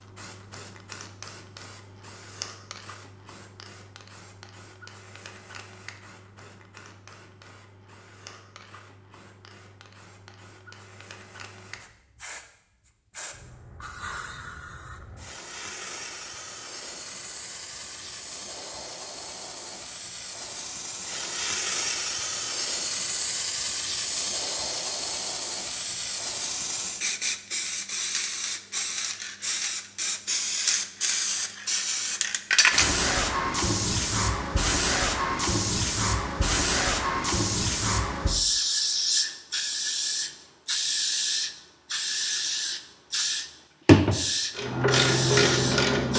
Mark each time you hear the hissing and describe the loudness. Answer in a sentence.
The hissing can be heard from 0.0 to 46.1 s, getting louder.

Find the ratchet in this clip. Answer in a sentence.
The ratchet can be heard from 44.5 to 46.1 s.